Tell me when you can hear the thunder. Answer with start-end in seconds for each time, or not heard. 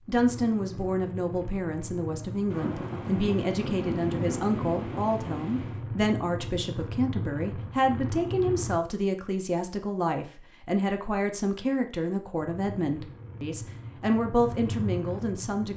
2.5-5.8.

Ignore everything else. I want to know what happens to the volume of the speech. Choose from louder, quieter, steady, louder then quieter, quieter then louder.
steady.